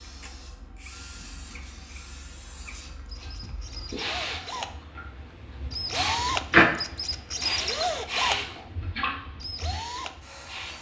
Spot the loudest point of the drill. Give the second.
8 s.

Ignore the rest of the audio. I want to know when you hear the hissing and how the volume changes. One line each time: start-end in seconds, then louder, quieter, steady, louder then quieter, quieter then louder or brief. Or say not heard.
0.0-10.7 louder then quieter.